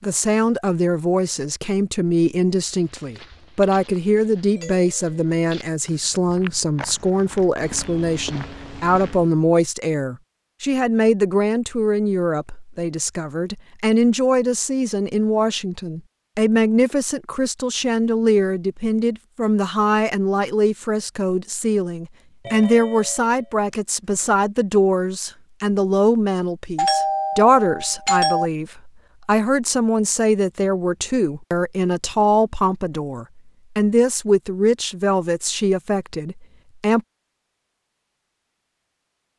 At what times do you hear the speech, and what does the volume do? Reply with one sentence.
You can hear the speech from 0.0 to 37.0 s, at a steady volume.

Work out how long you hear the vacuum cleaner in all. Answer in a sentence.
The vacuum cleaner can't be heard in this clip.